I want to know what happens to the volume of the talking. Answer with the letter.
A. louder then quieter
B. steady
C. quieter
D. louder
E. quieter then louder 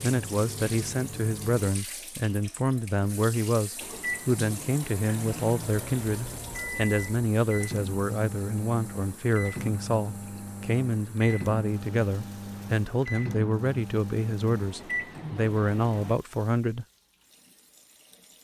B.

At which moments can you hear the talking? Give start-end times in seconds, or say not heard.
0.0-16.9.